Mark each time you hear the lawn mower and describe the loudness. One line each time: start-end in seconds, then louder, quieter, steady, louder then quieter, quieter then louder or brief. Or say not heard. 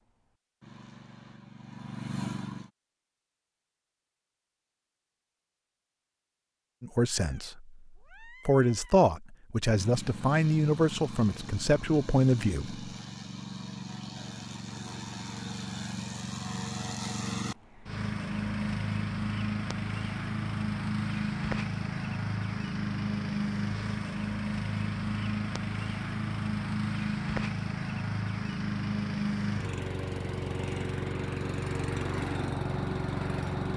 0.0-2.7 brief
9.7-33.7 louder.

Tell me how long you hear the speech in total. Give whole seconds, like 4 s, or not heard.
5 s.